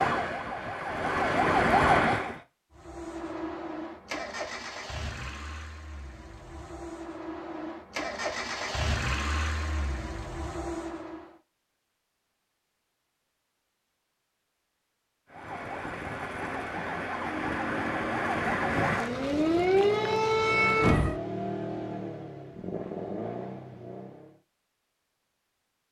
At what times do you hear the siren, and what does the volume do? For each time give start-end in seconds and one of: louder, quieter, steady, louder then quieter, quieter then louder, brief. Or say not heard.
0.0-2.5 brief
15.2-21.2 louder.